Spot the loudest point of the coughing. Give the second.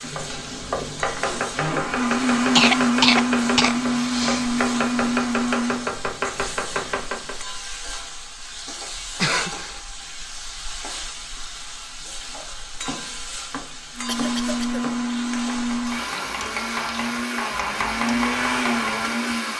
3 s.